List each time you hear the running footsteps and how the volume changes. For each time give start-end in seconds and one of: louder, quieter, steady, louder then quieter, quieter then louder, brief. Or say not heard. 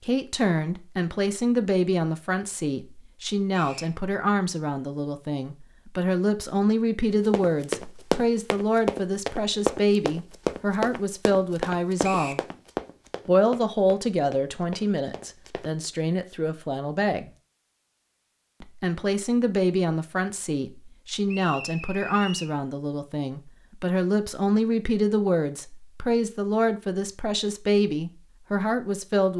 7.1-15.7 quieter.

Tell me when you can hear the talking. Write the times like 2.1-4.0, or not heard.
0.1-12.4, 13.2-17.3, 18.6-29.3.